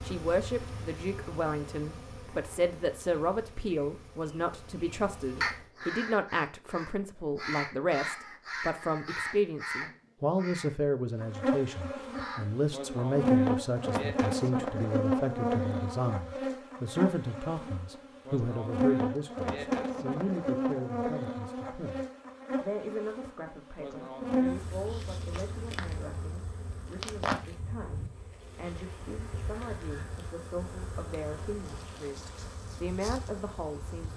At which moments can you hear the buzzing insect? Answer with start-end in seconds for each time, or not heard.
0.0-5.7, 11.2-34.1.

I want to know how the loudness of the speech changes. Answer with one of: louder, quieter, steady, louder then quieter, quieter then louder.
quieter.